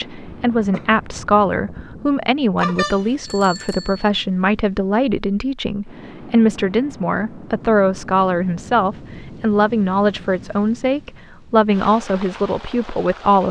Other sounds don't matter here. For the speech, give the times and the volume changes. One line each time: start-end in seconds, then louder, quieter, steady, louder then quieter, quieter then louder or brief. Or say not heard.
0.0-13.4 steady.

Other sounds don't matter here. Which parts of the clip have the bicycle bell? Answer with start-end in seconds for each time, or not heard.
2.6-4.1.